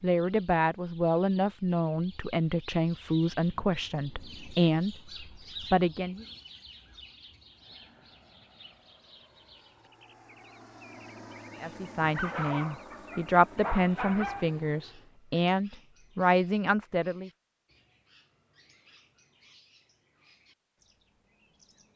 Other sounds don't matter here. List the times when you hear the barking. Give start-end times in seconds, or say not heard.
12.0-14.6.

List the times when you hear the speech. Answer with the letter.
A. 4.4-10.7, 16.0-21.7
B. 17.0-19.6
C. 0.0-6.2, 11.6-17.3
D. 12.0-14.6
C.